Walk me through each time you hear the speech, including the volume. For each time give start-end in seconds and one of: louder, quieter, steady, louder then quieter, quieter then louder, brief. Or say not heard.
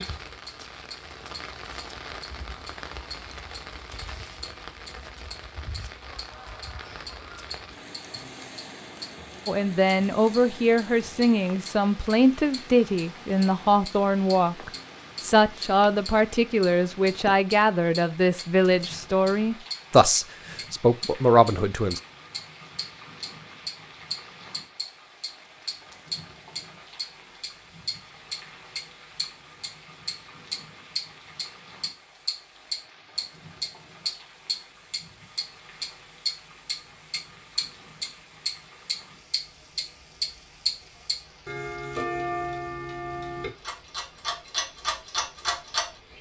9.4-22.0 steady.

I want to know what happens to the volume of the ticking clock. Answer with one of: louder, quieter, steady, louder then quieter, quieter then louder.
louder.